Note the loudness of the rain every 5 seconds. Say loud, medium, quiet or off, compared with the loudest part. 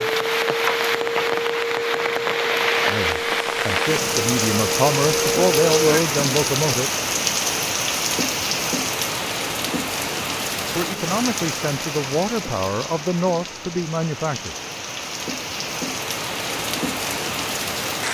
loud, loud, medium, loud.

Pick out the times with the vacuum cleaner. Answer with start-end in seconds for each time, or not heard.
0.0-6.0.